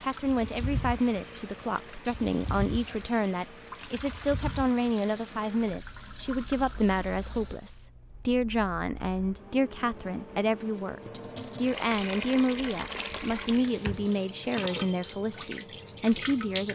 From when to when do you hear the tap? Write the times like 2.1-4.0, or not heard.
0.0-7.8, 10.6-16.7.